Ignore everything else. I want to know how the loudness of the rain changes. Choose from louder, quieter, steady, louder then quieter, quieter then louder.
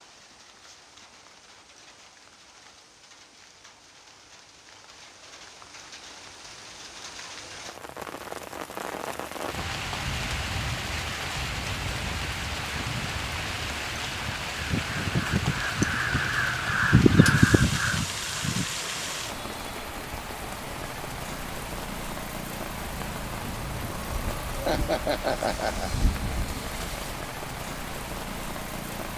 louder.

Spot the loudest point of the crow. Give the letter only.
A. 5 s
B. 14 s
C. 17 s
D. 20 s
C.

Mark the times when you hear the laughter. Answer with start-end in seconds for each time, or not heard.
24.6-25.9.